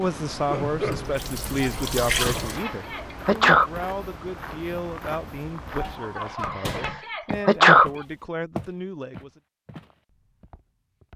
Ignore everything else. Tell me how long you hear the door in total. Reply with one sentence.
The door can be heard for 2 seconds in total.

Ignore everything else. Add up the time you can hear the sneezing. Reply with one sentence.
You can hear the sneezing for 4 seconds altogether.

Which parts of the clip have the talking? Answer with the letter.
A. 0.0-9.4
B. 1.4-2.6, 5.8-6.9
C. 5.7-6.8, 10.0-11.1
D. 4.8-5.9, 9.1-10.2
A.